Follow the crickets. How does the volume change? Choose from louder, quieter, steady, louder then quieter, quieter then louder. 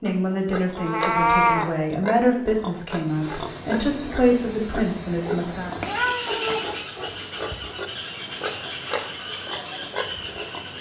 steady.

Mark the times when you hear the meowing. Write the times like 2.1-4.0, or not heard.
0.8-1.7, 5.8-7.7.